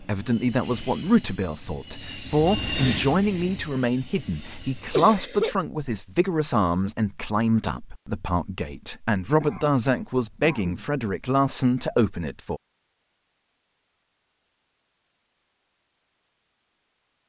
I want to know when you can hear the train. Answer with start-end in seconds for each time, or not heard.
0.0-5.0.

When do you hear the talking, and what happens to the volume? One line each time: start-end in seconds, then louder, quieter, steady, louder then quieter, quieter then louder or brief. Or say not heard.
0.0-12.6 steady.